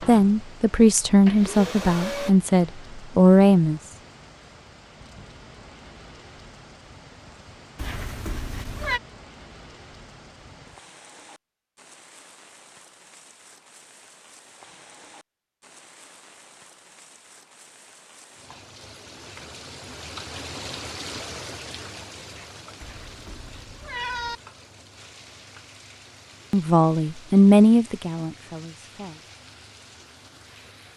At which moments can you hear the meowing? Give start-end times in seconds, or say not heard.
7.8-9.0, 22.8-24.4.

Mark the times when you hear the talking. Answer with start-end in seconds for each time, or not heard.
0.0-3.8, 26.5-29.2.